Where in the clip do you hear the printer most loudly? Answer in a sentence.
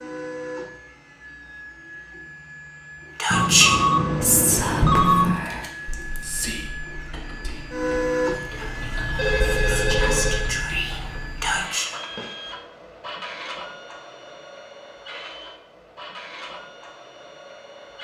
The loudest moment of the printer is at 8 seconds.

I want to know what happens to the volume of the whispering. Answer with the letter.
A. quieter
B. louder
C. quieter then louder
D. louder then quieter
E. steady
C.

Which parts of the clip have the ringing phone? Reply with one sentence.
The ringing phone can be heard from 3.3 to 5.3 s and from 9.2 to 10.5 s.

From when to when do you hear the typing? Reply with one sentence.
You can hear the typing from 5.3 to 11.7 s.